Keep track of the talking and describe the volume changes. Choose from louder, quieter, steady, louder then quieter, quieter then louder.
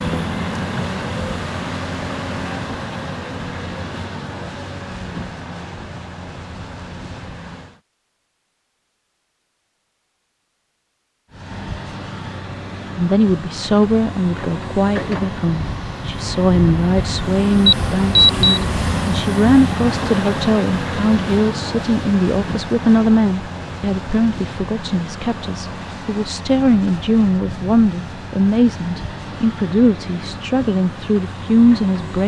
steady.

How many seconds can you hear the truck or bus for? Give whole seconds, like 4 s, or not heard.
29 s.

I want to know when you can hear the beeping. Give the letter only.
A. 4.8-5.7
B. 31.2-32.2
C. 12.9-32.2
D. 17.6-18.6
D.